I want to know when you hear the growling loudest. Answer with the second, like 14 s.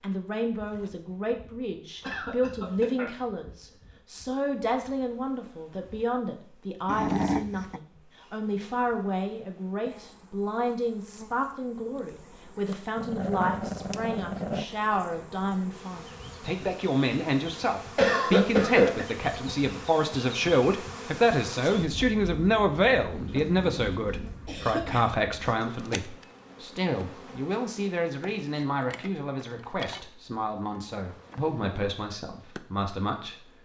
7 s.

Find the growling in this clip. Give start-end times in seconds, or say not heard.
6.8-7.8, 12.9-14.7, 23.1-24.3.